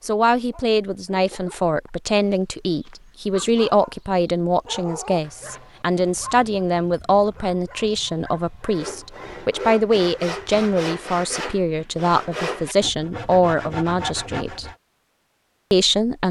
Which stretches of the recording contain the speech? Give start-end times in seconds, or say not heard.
0.0-14.7, 15.7-16.2.